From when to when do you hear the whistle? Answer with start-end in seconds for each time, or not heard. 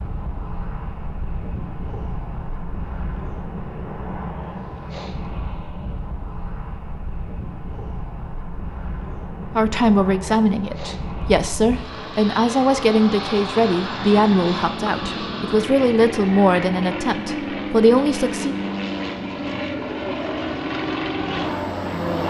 not heard.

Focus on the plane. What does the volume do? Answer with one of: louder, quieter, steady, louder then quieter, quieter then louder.
louder.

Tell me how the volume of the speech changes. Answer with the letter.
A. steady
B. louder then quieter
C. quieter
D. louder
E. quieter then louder
A.